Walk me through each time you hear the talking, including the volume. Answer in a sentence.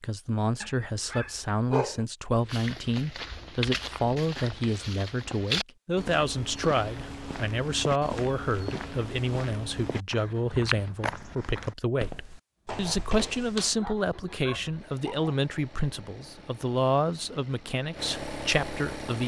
You can hear the talking from 0.0 to 19.2 s, at a steady volume.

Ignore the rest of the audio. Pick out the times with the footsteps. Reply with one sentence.
The footsteps can be heard from 2.4 to 13.8 s.